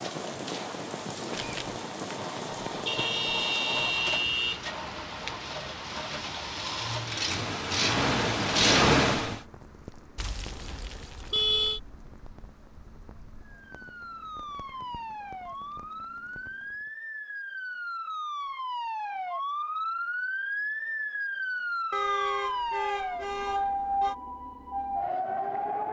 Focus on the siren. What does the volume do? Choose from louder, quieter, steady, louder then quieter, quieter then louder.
louder.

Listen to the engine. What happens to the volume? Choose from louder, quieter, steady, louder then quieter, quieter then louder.
louder.